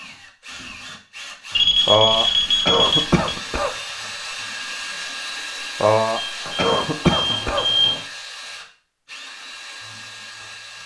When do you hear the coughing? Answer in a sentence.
You can hear the coughing from 1.9 to 3.8 s and from 5.8 to 7.7 s.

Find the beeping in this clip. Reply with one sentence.
The beeping can be heard from 1.5 to 3.2 s and from 6.2 to 8.0 s.